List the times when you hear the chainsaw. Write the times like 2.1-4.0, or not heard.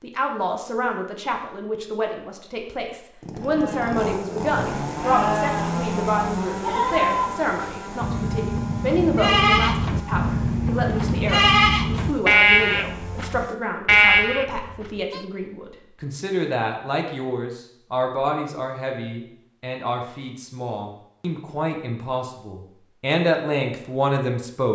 3.2-13.6.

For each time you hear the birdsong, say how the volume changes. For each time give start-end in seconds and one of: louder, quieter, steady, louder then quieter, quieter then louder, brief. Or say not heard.
not heard.